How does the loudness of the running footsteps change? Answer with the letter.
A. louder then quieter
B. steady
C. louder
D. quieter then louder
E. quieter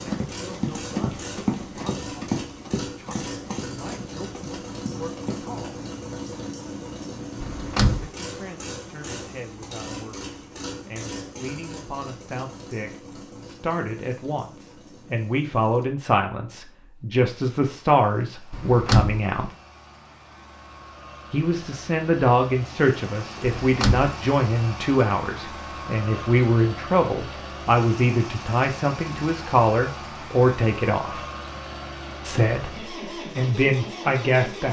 E.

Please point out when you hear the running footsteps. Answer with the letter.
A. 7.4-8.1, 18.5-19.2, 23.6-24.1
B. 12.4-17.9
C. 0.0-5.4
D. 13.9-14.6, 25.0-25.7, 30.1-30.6
C.